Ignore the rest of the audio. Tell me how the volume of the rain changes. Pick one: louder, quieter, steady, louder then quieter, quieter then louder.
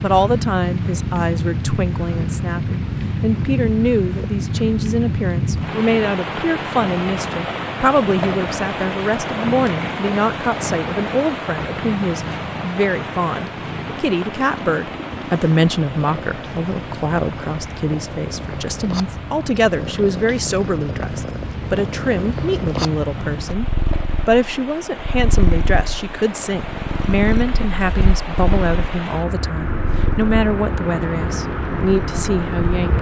quieter then louder.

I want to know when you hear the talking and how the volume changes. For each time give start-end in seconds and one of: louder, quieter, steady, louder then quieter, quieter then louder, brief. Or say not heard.
0.0-32.9 steady.